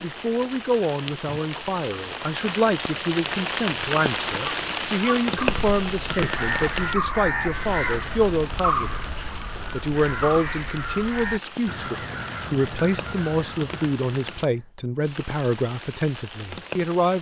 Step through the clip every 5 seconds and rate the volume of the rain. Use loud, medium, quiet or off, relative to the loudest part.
loud, loud, medium, medium.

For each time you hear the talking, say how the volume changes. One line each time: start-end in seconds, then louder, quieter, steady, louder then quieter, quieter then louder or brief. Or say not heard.
0.0-17.1 steady.